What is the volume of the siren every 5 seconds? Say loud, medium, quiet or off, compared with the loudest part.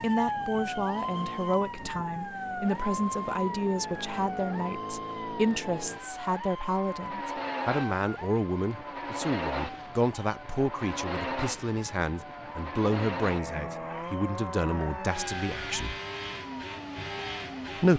loud, medium, medium, medium.